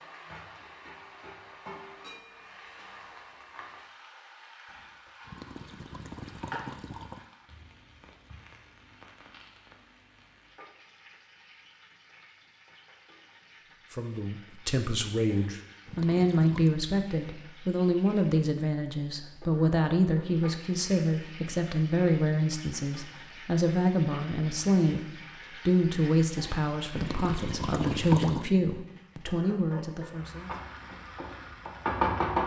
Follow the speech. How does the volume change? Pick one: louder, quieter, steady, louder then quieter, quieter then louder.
steady.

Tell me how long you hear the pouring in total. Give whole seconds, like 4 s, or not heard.
6 s.